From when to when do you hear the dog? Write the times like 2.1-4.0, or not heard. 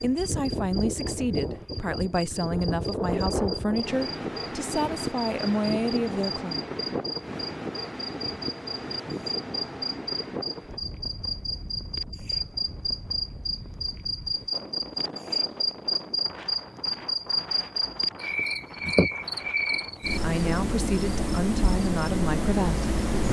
not heard.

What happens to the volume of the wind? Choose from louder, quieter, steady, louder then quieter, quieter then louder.
quieter.